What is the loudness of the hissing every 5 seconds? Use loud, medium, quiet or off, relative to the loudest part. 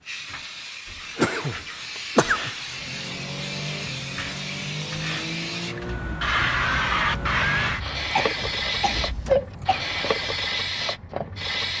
medium, loud, loud.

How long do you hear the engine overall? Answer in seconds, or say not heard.
7 s.